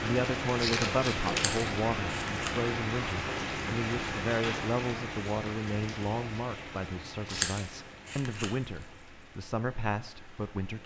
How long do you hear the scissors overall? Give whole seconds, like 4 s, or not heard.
3 s.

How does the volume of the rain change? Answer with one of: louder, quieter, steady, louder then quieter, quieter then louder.
quieter.